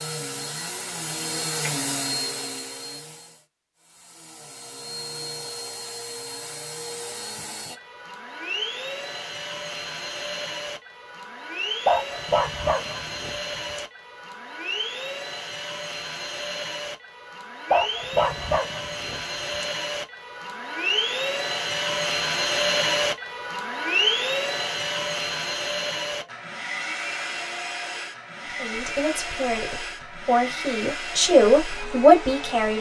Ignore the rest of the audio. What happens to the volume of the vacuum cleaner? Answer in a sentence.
The volume of the vacuum cleaner goes up, then down.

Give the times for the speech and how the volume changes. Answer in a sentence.
The speech can be heard from 28.5 to 32.7 s, getting quieter then louder.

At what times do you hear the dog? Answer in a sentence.
The dog can be heard from 11.8 to 13.8 s and from 17.7 to 19.6 s.